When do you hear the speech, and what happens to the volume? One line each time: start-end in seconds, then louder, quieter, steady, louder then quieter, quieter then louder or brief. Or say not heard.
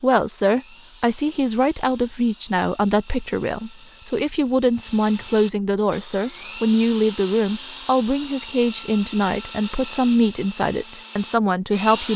0.0-12.1 steady.